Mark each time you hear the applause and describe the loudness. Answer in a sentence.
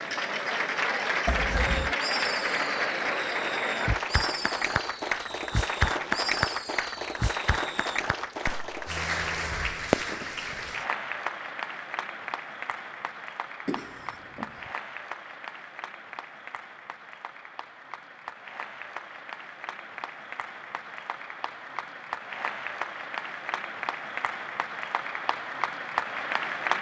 The applause can be heard from 0.0 to 26.7 s, getting quieter then louder.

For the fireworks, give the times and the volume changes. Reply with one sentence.
You can hear the fireworks from 1.6 to 10.6 s, getting louder.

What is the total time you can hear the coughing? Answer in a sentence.
The coughing can be heard for 2 seconds in total.